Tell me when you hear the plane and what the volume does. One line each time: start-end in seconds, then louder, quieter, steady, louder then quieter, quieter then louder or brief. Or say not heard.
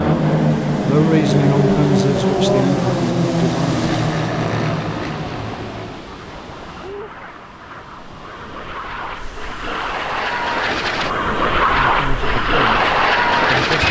0.0-13.8 quieter then louder.